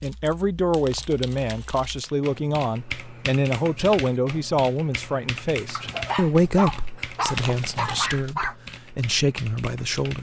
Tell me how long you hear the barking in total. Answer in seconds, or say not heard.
3 s.